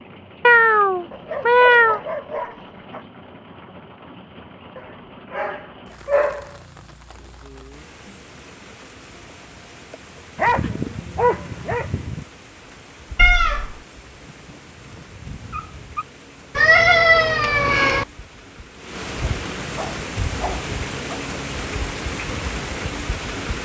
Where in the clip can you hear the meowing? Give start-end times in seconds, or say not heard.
0.5-2.0, 13.2-13.8, 16.6-18.1.